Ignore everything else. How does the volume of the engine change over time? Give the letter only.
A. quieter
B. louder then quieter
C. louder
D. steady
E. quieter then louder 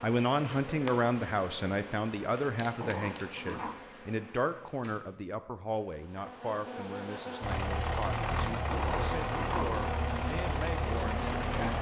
D.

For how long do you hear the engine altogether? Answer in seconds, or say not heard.
4 s.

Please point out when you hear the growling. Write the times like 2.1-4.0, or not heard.
2.8-3.8, 8.7-9.9.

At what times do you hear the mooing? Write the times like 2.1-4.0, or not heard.
not heard.